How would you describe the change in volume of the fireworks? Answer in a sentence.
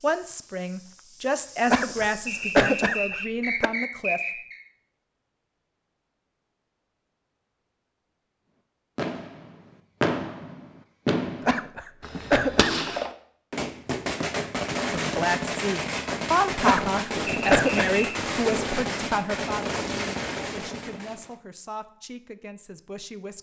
The volume of the fireworks stays about the same.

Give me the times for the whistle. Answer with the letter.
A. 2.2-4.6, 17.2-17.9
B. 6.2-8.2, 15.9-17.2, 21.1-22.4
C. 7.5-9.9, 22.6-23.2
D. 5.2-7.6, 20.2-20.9
A.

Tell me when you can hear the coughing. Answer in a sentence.
The coughing can be heard from 1.6 to 3.7 s, from 11.4 to 12.8 s and from 16.6 to 17.9 s.